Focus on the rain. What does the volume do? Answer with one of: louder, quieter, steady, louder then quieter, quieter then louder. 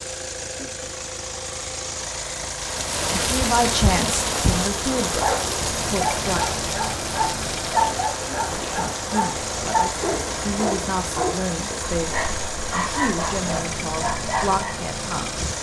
quieter.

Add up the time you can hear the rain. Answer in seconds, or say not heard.
13 s.